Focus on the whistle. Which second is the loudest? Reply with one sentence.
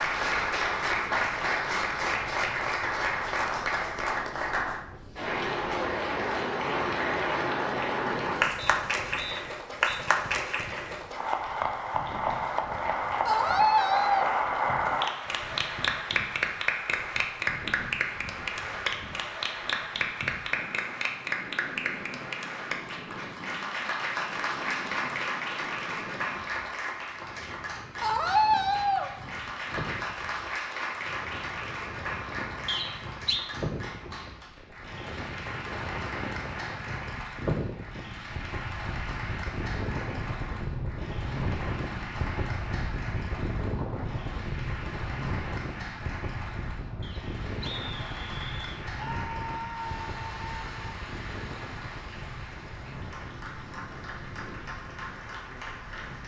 The volume of the whistle peaks at 33 seconds.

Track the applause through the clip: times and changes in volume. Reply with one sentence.
You can hear the applause from 0.0 to 56.2 s, getting quieter.